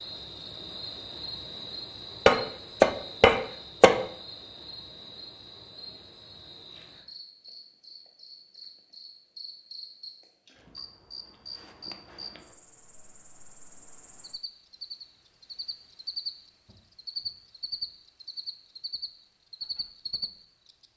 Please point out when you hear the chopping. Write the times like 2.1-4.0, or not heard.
2.2-4.0.